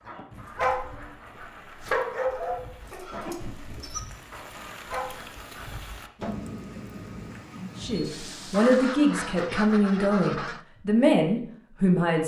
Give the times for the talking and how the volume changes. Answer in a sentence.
The talking can be heard from 7.8 to 12.2 s, at a steady volume.